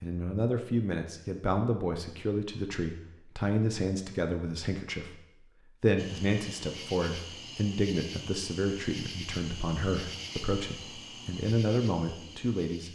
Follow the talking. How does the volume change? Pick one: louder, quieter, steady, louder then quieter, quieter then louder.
steady.